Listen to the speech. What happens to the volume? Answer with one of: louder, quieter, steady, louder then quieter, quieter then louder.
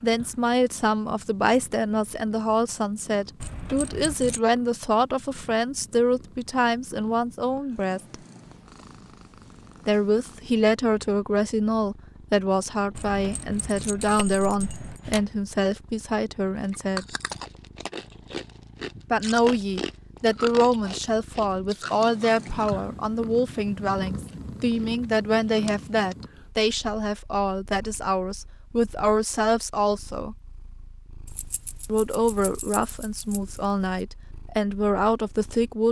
steady.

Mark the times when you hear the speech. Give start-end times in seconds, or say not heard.
0.0-8.2, 9.8-17.1, 19.1-30.4, 31.9-35.8.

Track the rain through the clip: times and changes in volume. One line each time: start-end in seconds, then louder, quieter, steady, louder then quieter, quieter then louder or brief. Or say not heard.
not heard.